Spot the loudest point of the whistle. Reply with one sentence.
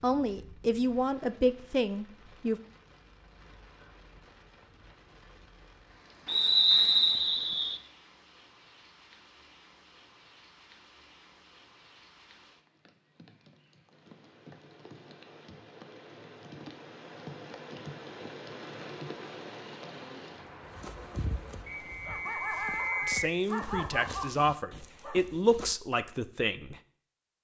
The volume of the whistle peaks at 7 seconds.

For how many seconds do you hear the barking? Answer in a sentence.
The barking can be heard for 5 seconds in total.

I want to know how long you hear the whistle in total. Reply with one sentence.
The whistle can be heard for 3 seconds in total.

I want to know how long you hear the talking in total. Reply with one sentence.
The talking can be heard for 6 seconds in total.